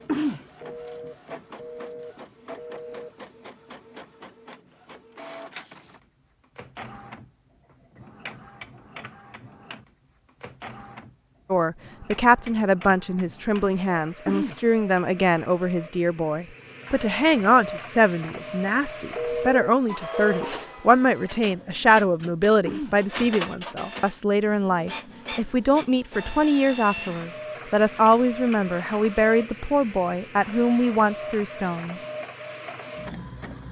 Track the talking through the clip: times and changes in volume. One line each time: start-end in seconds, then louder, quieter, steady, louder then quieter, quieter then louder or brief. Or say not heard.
11.5-32.0 steady.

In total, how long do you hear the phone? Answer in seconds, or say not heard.
4 s.